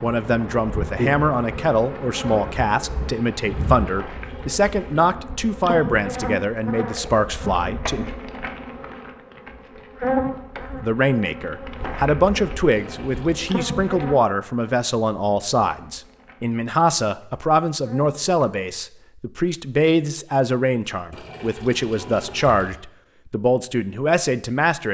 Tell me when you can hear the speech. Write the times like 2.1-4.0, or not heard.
0.0-8.1, 10.6-24.9.